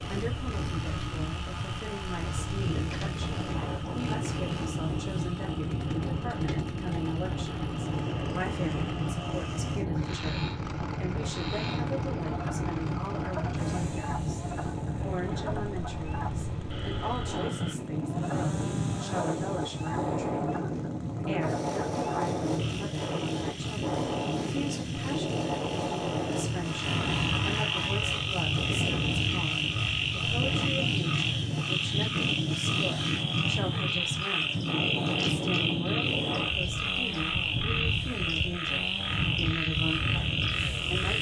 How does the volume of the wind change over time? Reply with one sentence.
The loudness of the wind stays about the same.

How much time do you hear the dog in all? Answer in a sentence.
The dog can't be heard in this clip.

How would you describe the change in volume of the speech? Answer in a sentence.
The volume of the speech stays about the same.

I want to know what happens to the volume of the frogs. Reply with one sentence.
The loudness of the frogs goes up.